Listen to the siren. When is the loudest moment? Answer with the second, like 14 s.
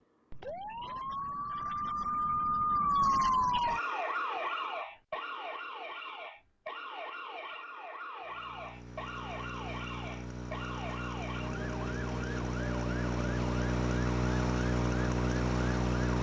3 s.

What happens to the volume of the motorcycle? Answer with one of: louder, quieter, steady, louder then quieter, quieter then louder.
louder.